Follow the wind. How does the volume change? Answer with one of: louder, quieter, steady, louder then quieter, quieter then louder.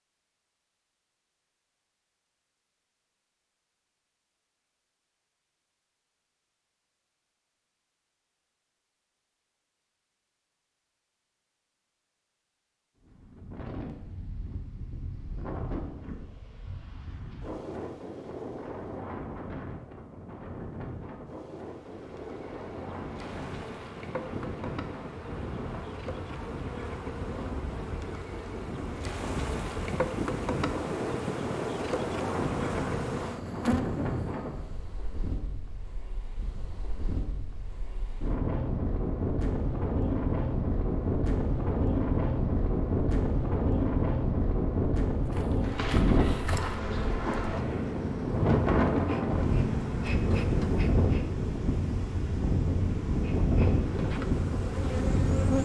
louder.